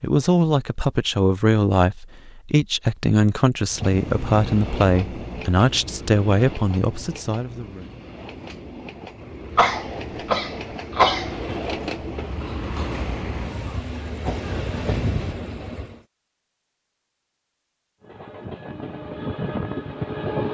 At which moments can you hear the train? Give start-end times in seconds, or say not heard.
3.7-16.0, 18.0-20.4.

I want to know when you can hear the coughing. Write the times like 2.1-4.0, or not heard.
9.6-11.3.